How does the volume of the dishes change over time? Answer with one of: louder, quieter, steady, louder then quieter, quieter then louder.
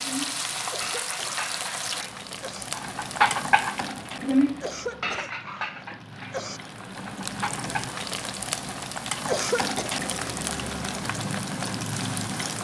louder then quieter.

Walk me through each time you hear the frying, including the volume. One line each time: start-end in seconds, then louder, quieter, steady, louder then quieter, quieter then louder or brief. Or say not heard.
0.0-12.5 quieter then louder.